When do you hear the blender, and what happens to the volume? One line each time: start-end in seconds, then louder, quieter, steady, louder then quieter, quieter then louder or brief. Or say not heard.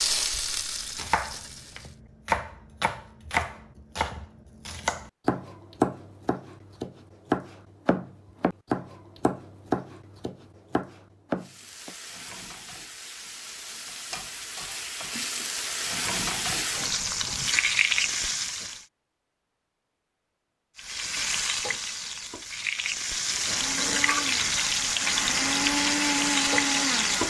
23.1-27.2 louder.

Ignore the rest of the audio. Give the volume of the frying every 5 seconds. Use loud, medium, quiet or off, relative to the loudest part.
medium, off, quiet, loud, loud, loud.